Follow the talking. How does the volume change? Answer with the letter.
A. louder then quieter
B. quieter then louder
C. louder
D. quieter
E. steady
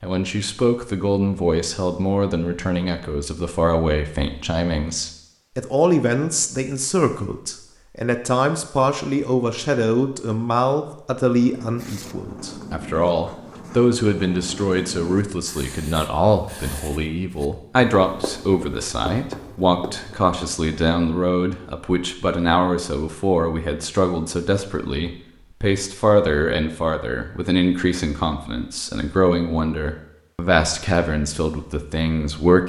E.